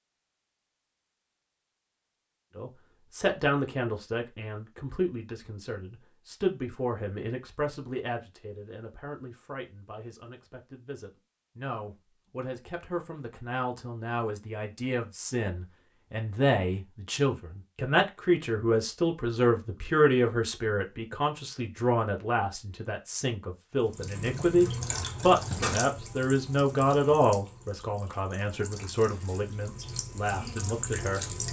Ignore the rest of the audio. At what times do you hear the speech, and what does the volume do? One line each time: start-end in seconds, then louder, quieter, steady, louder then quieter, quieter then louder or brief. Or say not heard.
2.5-31.2 quieter then louder.